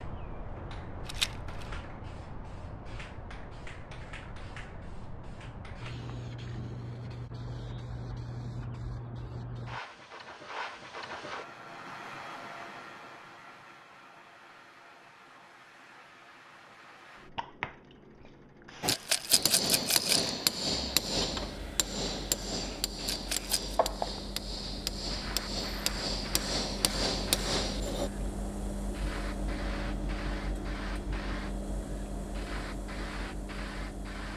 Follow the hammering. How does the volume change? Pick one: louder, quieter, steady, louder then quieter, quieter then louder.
quieter then louder.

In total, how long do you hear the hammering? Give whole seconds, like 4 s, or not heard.
9 s.